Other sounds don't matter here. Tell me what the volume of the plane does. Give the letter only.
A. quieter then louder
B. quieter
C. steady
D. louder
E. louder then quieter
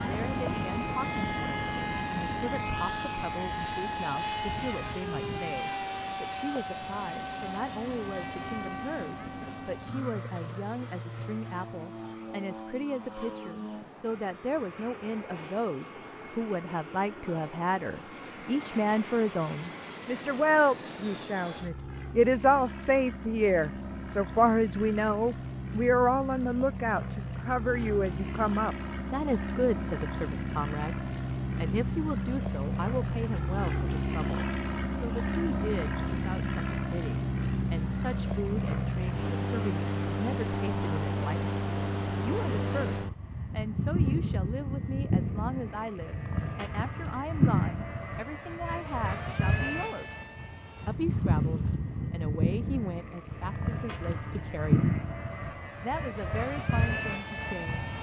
A.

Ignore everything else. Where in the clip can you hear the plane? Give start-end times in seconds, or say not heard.
0.0-57.9.